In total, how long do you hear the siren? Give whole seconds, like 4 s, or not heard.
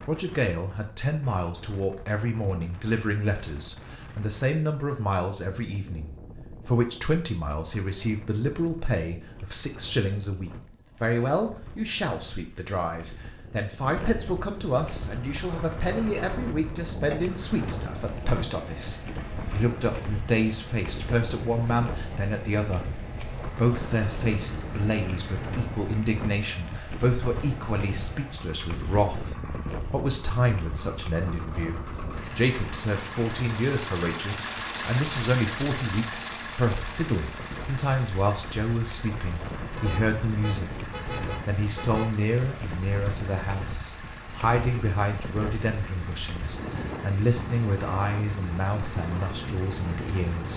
not heard.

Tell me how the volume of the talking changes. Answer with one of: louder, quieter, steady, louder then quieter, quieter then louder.
steady.